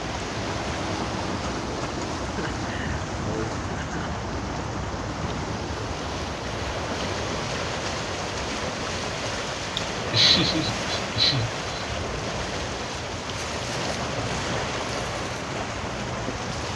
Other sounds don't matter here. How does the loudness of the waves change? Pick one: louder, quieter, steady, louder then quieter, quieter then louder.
steady.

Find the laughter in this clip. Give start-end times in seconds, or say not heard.
2.2-4.2, 9.8-11.8.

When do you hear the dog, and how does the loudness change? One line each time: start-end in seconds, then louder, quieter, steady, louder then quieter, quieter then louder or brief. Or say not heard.
not heard.